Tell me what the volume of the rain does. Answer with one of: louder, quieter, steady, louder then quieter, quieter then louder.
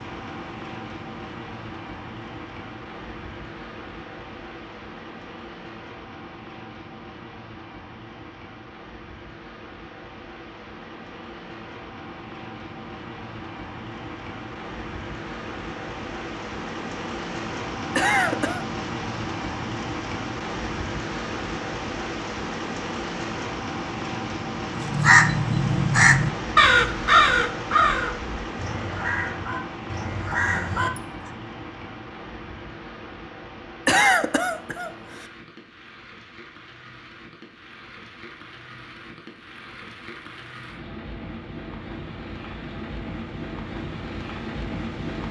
louder then quieter.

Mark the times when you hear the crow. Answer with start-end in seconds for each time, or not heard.
24.8-31.0.